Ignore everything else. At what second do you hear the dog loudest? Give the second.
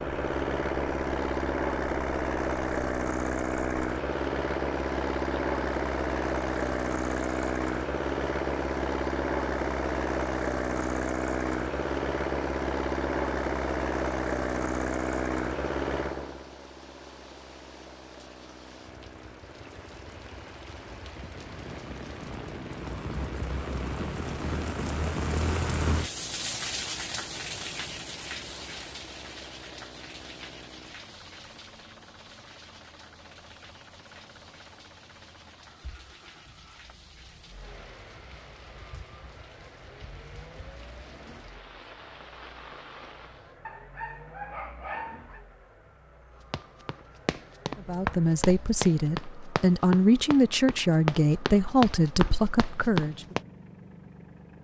45 s.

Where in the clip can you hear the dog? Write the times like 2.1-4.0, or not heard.
43.6-45.4.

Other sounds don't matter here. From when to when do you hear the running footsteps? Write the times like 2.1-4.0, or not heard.
46.5-53.4.